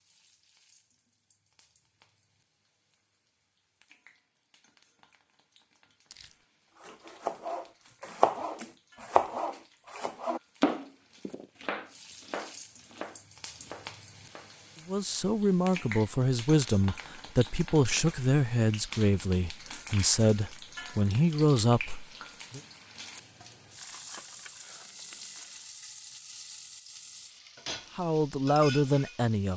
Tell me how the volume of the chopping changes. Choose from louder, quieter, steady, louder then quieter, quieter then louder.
quieter.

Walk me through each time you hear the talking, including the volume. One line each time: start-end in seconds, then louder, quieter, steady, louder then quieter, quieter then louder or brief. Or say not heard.
14.8-22.6 steady
27.9-29.5 brief.